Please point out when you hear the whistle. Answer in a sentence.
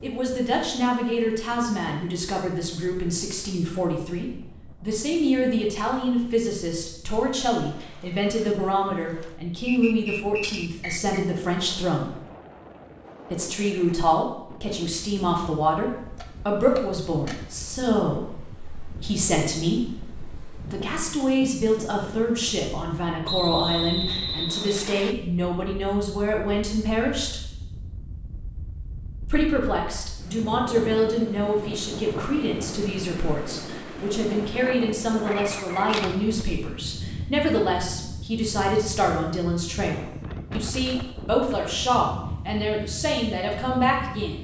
You can hear the whistle from 9.7 to 11.2 s and from 23.2 to 25.1 s.